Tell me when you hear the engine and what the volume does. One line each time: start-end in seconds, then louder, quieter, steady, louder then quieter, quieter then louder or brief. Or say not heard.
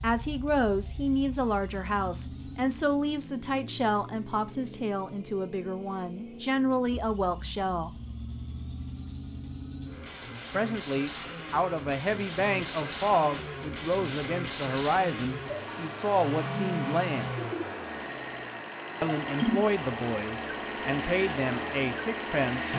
0.0-22.7 louder.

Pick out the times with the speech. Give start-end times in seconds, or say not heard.
0.0-8.0, 10.5-17.3, 19.0-22.7.